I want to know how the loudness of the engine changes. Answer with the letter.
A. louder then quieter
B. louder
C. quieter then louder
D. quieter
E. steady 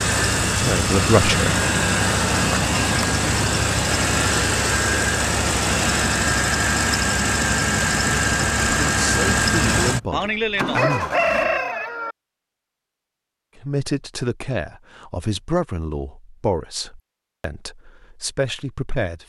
E.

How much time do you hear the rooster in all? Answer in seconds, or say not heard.
2 s.